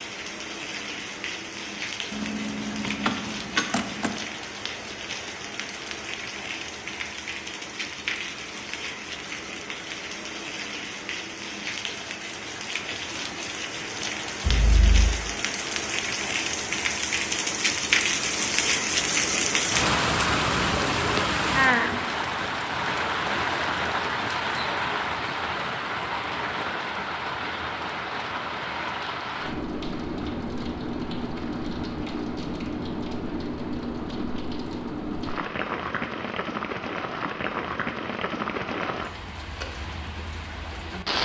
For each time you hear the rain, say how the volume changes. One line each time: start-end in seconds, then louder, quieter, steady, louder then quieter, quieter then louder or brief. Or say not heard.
0.0-41.2 louder then quieter.